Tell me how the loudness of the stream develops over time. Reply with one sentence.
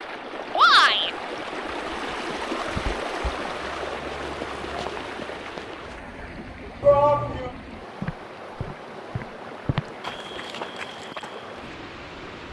The loudness of the stream goes down.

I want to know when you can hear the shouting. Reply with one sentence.
The shouting can be heard from 0.6 to 1.1 s and from 6.8 to 7.5 s.